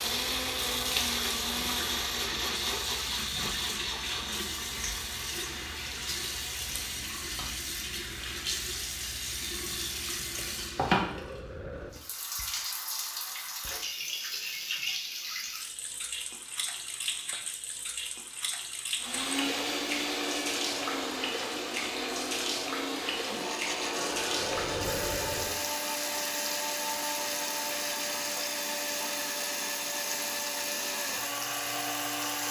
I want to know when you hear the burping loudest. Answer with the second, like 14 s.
25 s.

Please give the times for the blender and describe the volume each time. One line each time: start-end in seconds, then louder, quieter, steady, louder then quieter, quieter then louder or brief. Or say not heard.
0.0-7.1 quieter
18.9-32.4 steady.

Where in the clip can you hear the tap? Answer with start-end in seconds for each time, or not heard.
0.0-32.4.